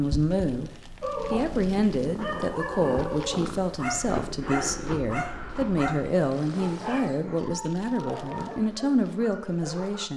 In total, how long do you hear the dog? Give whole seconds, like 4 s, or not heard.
9 s.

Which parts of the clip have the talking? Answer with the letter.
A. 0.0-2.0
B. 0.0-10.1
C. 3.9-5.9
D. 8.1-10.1
B.